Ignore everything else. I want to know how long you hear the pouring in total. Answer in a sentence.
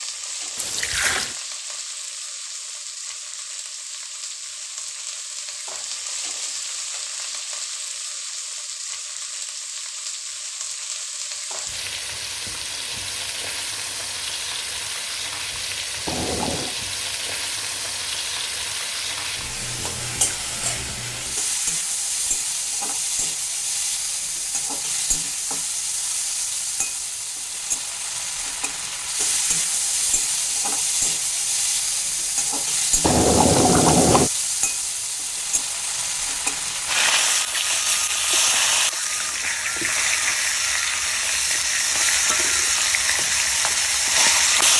The pouring can be heard for 3 seconds in total.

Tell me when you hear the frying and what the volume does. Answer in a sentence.
You can hear the frying from 0.0 to 44.7 s, getting louder.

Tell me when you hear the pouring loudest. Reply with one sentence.
The volume of the pouring peaks at 34 seconds.